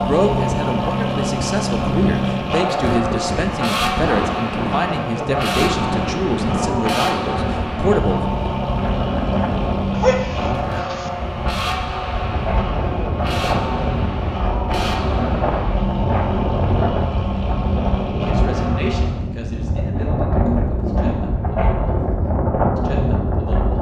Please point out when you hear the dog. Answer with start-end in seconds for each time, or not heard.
9.9-11.1.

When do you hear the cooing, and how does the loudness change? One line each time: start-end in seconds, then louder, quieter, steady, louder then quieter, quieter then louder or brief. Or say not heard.
not heard.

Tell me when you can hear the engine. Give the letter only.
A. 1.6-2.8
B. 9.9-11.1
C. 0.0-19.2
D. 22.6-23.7
C.